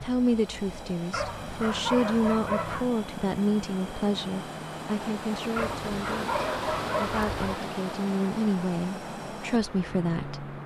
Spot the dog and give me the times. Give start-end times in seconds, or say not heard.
1.1-2.9, 5.5-7.5.